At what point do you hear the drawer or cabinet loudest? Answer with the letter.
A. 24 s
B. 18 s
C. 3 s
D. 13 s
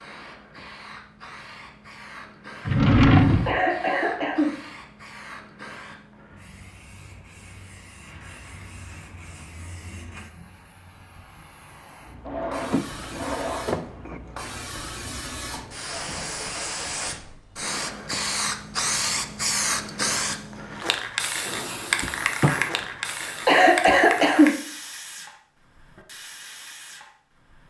C.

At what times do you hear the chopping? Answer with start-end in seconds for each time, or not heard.
not heard.